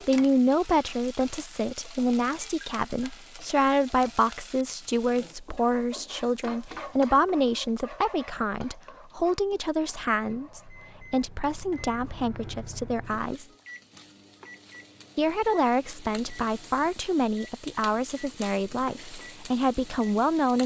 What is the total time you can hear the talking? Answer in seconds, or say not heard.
19 s.